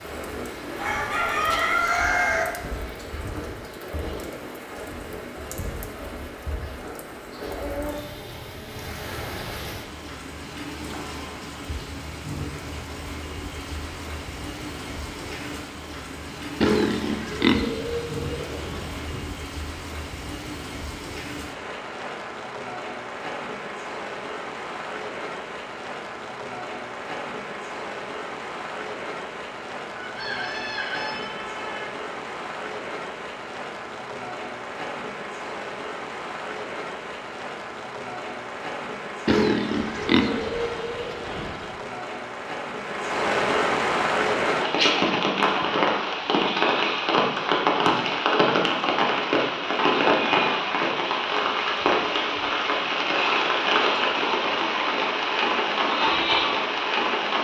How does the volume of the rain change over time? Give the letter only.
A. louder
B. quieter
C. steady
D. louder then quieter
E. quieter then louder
A.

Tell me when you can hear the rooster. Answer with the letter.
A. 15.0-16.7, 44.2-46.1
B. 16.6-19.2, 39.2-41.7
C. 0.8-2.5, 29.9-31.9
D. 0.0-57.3
C.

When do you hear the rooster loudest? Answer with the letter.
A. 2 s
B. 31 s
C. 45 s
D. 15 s
A.